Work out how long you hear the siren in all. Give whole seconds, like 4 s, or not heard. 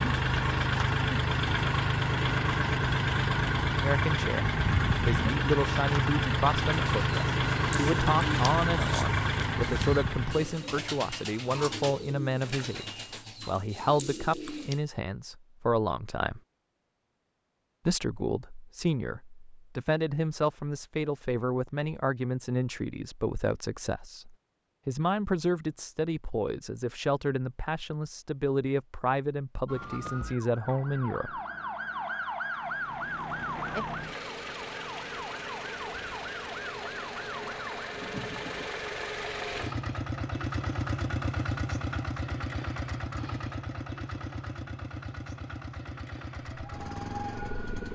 10 s.